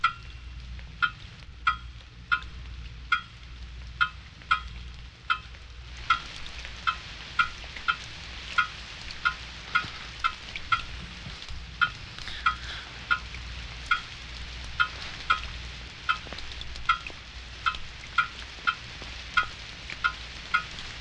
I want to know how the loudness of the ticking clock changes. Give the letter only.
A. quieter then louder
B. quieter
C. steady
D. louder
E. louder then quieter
C.